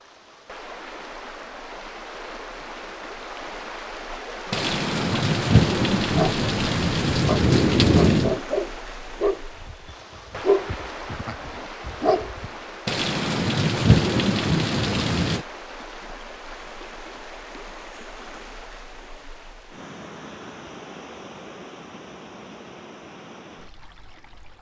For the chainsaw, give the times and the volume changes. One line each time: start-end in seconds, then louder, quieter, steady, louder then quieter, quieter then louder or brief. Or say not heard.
not heard.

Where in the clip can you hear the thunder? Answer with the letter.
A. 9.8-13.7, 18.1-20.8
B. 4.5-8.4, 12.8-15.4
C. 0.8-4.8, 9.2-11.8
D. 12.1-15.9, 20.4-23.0
B.